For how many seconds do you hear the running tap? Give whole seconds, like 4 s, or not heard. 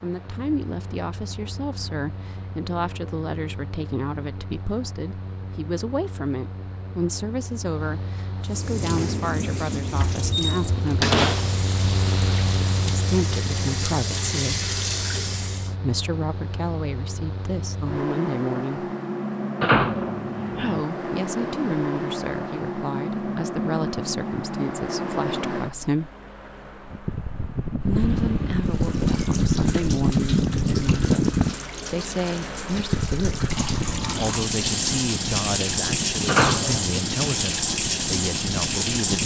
18 s.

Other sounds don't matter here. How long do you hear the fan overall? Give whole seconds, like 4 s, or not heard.
39 s.